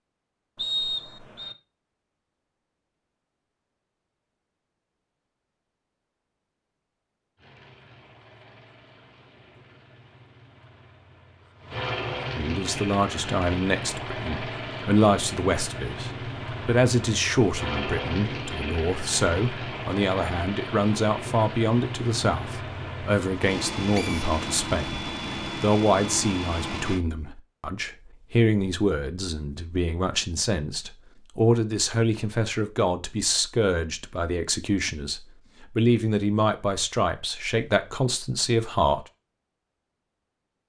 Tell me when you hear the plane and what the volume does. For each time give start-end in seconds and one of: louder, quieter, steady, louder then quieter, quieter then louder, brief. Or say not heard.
7.3-27.1 louder.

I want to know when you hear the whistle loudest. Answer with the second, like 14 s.
1 s.